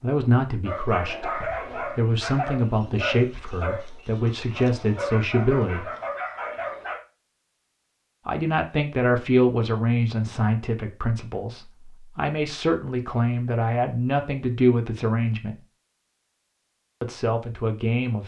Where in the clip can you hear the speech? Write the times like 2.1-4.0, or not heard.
0.0-5.9, 8.2-15.6, 17.0-18.2.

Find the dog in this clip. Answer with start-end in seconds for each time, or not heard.
0.6-7.0.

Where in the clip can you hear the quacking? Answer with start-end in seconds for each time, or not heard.
not heard.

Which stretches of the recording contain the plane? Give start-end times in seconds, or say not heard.
not heard.